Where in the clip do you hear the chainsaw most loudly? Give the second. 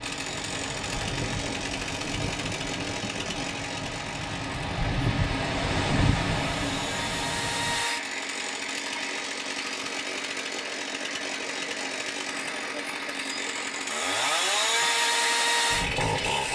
15 s.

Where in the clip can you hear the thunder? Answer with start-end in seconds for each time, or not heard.
0.5-3.5.